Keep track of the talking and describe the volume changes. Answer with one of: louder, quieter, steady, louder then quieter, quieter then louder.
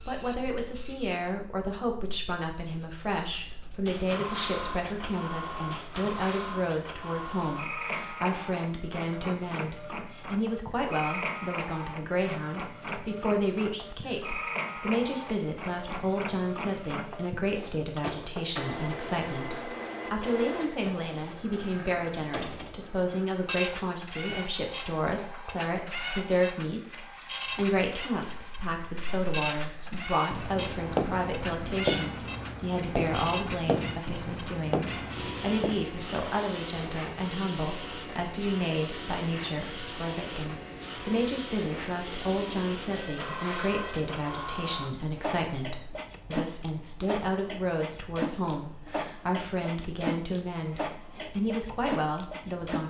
steady.